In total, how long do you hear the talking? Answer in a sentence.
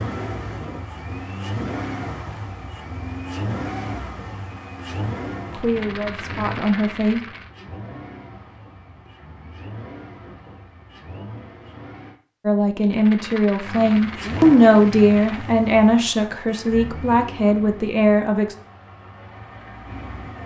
The talking can be heard for 8 seconds in total.